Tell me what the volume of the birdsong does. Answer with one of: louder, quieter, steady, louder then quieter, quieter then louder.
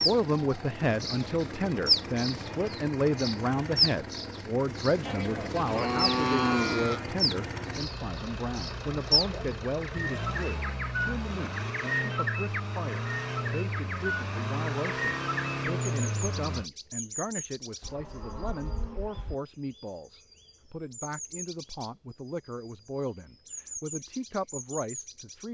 quieter.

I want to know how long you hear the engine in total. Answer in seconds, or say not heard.
17 s.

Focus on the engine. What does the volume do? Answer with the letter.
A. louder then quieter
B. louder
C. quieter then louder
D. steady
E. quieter
B.